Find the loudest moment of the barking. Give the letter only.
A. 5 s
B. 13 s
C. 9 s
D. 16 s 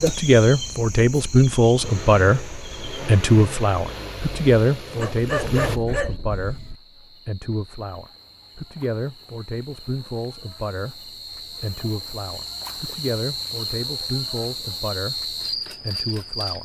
A.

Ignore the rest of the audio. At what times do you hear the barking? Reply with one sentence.
You can hear the barking from 5.0 to 6.8 s.